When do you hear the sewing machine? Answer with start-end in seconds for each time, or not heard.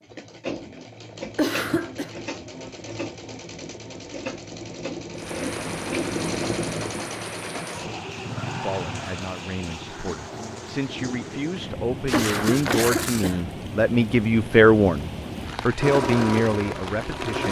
0.0-8.1, 15.8-17.4.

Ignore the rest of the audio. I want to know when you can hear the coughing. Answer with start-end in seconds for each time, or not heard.
1.4-2.1, 12.1-13.4.